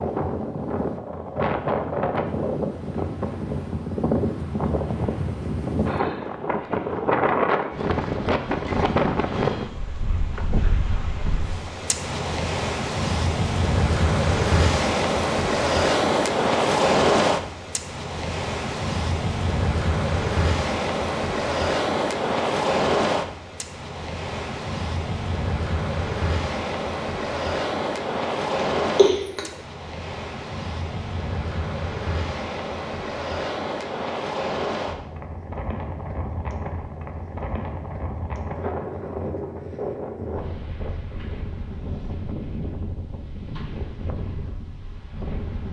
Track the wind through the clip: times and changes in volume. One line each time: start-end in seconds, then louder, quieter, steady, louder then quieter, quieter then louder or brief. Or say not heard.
0.0-45.6 quieter.